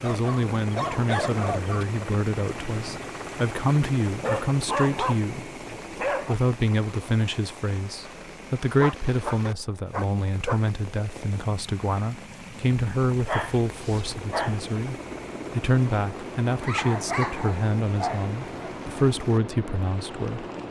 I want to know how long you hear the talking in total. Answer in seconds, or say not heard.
20 s.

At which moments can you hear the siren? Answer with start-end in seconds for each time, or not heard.
not heard.